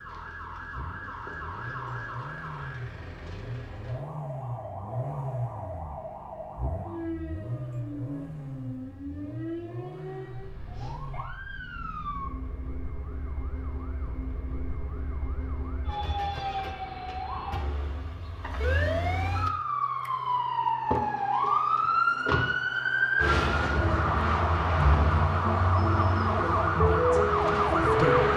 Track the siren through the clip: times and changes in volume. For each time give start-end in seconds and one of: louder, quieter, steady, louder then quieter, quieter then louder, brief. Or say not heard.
0.0-28.3 louder.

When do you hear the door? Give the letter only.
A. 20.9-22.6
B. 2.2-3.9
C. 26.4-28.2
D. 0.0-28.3
A.